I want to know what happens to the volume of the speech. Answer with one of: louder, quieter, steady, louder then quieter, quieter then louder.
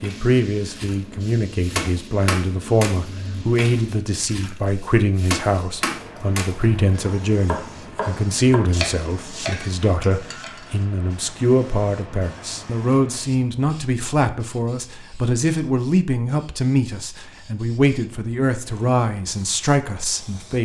steady.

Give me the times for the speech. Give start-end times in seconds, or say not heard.
0.0-20.6.